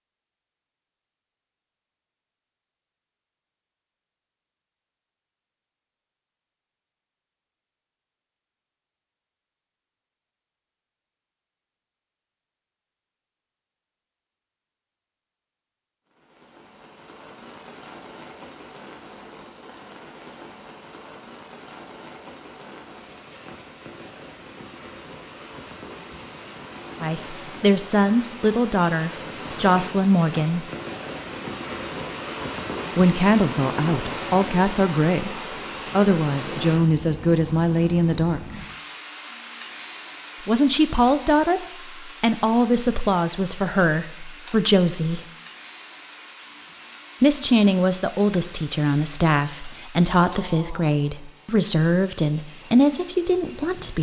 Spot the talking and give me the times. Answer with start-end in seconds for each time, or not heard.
27.0-30.6, 33.0-38.6, 40.5-45.3, 47.2-53.9.